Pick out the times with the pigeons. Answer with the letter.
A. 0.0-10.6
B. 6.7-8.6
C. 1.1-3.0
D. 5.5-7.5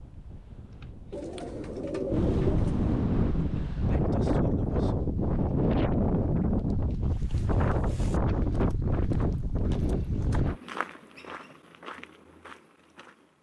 C.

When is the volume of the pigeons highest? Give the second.
2 s.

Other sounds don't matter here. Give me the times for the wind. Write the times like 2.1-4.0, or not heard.
0.0-10.6.